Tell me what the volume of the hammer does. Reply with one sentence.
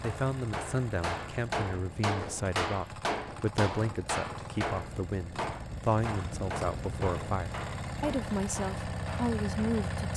The volume of the hammer goes down.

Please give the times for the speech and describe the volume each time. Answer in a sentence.
You can hear the speech from 0.0 to 10.1 s, at a steady volume.